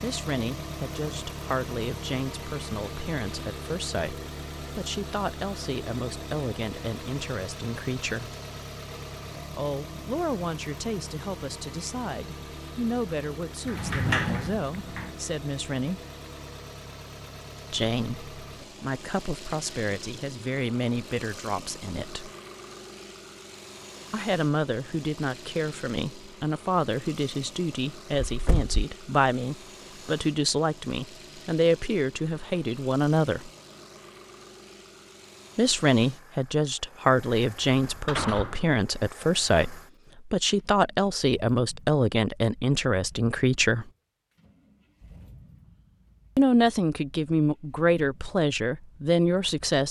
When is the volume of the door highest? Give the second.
14 s.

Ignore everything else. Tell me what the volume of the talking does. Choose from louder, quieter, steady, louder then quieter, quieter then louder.
louder.